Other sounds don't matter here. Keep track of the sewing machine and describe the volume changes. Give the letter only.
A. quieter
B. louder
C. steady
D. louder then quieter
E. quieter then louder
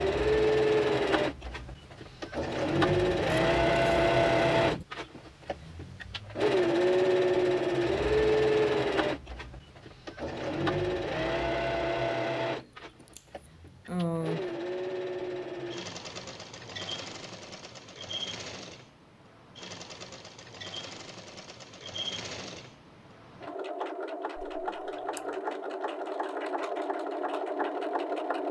E.